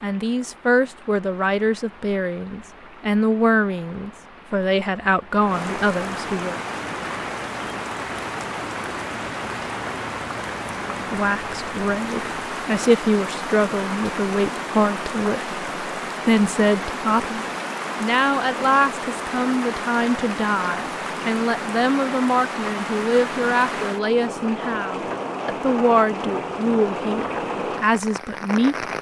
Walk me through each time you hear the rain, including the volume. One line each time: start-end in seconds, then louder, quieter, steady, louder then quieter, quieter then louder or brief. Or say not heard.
0.0-28.9 louder.